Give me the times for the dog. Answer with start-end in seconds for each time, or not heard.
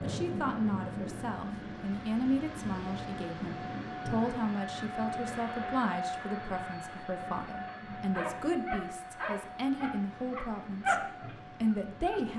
7.7-12.2.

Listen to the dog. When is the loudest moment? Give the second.
11 s.